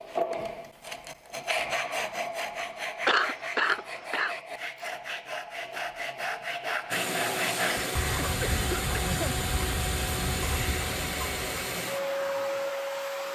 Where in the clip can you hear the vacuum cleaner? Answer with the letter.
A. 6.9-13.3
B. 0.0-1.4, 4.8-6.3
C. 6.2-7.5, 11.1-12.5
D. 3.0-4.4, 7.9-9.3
A.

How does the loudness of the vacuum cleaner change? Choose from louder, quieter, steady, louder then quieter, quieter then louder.
steady.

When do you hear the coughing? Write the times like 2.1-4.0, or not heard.
3.0-4.4, 7.9-9.3.